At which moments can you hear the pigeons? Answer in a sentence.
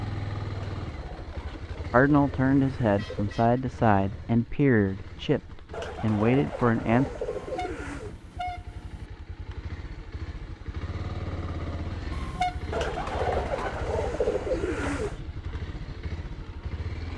The pigeons can be heard from 0.5 to 3.4 s, from 5.7 to 8.2 s and from 12.7 to 15.2 s.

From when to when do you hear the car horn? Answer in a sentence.
You can hear the car horn from 3.0 to 3.6 s, from 7.2 to 9.1 s and from 12.1 to 12.8 s.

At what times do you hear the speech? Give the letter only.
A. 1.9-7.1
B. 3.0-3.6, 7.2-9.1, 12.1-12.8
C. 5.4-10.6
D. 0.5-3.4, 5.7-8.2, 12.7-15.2
A.